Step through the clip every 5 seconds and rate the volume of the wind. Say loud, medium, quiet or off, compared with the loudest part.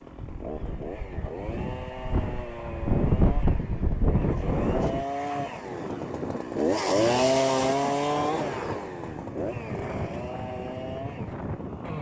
loud, medium, medium.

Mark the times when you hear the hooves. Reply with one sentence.
The hooves can't be heard in this clip.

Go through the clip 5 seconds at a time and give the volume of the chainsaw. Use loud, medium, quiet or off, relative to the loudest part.
medium, loud, medium.